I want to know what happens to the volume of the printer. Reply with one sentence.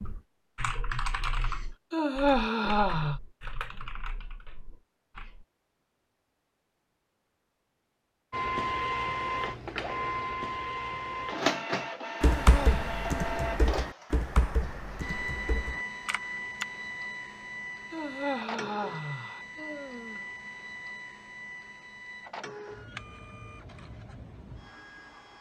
The volume of the printer goes down.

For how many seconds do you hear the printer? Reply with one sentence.
The printer can be heard for 17 seconds in total.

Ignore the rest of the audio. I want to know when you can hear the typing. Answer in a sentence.
You can hear the typing from 0.0 to 5.5 s and from 12.2 to 16.6 s.